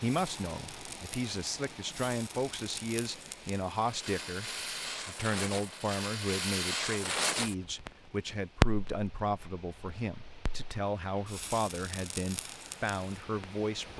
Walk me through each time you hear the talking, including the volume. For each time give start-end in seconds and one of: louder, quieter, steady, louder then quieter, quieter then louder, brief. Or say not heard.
0.0-13.9 steady.